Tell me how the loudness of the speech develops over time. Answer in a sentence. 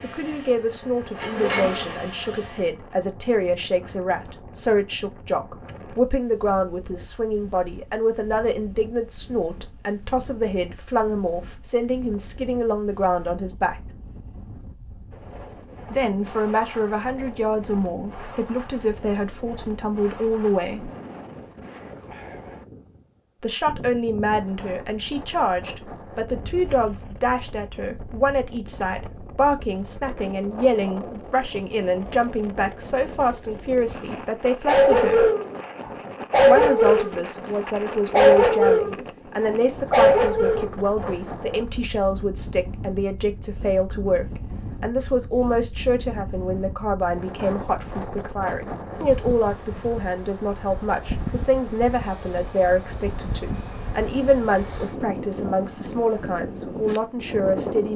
The loudness of the speech stays about the same.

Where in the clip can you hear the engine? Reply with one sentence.
The engine can be heard from 0.0 to 2.8 s.